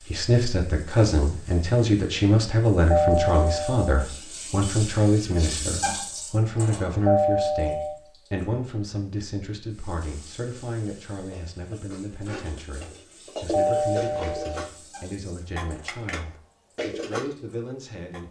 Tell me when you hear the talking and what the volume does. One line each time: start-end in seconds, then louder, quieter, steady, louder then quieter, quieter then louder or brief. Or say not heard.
0.0-18.2 quieter.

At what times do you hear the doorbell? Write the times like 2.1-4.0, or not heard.
2.9-4.0, 7.0-8.0, 13.5-14.7.